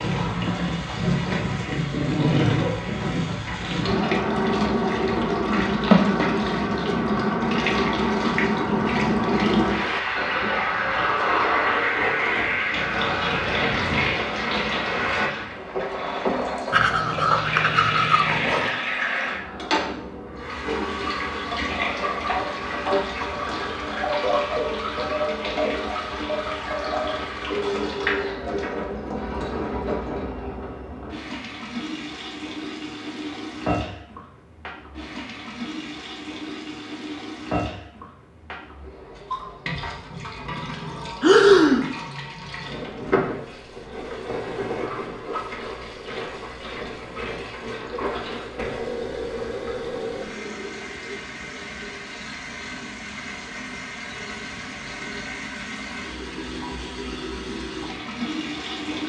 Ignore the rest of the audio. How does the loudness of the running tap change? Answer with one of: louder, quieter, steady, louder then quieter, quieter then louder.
quieter.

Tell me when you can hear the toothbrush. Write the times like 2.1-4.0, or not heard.
16.7-18.8.